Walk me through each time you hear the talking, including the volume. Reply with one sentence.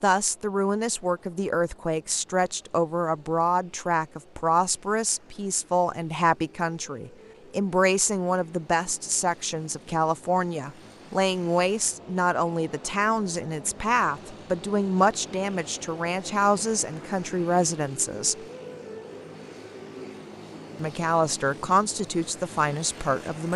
You can hear the talking from 0.0 to 18.4 s, at a steady volume; and briefly from 20.8 to 23.5 s.